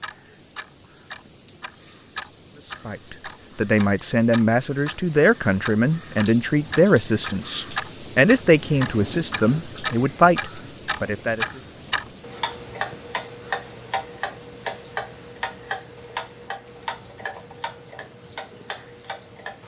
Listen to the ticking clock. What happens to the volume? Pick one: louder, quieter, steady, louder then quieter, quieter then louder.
louder then quieter.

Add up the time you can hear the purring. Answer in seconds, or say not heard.
not heard.